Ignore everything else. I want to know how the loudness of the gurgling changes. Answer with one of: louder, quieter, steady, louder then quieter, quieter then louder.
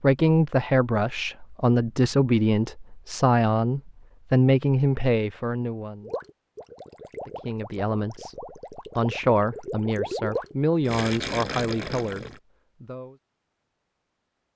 louder.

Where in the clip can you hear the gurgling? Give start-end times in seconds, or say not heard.
6.0-12.4.